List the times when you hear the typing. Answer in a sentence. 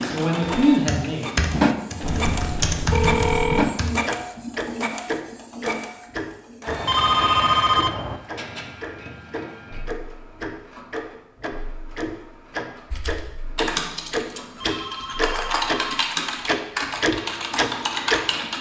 You can hear the typing from 0.0 to 4.0 s and from 12.9 to 18.5 s.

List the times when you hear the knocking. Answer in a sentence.
You can't hear the knocking here.